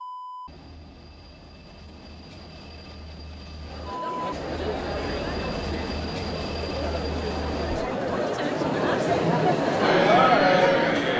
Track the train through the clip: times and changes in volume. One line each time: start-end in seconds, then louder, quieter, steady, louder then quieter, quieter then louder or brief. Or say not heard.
0.0-7.8 louder.